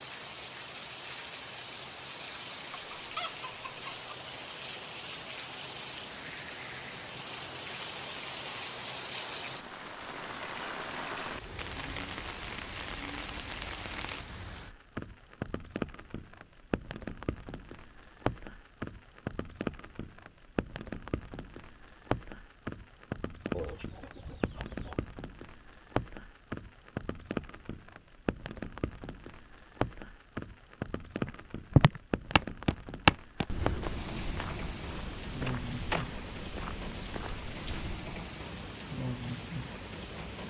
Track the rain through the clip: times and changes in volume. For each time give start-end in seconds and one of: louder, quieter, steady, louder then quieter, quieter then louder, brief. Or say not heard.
0.0-40.4 steady.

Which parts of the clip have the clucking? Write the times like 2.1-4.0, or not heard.
2.7-4.1, 23.5-25.1.